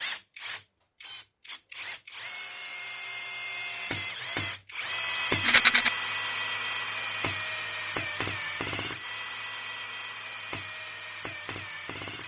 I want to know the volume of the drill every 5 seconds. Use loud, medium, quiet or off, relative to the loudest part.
loud, loud, medium.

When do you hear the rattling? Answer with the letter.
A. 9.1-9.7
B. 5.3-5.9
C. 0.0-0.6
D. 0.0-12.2
B.